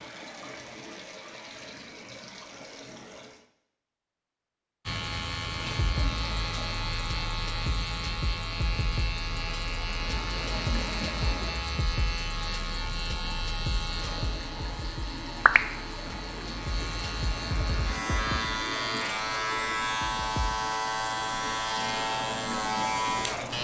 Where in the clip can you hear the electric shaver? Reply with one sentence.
You can hear the electric shaver from 4.8 to 23.5 s.